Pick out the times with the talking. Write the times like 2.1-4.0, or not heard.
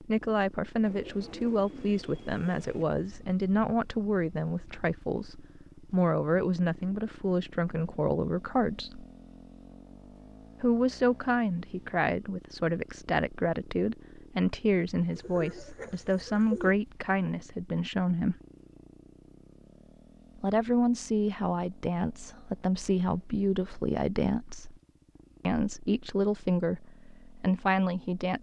0.0-9.1, 10.6-18.4, 20.4-24.8, 25.4-28.3.